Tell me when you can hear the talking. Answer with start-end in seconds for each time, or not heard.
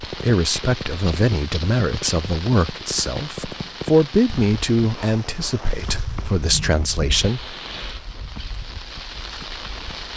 0.0-7.4.